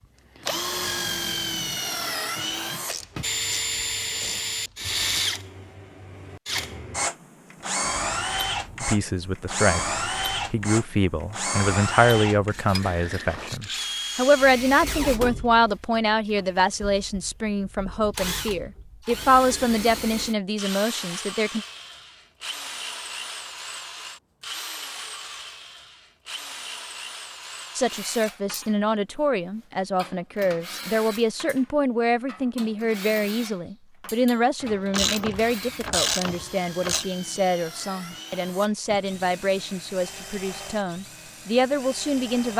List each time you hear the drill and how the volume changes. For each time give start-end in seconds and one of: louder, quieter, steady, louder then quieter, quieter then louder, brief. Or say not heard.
0.3-42.5 quieter.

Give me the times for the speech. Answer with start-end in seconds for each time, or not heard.
8.8-21.6, 27.8-42.5.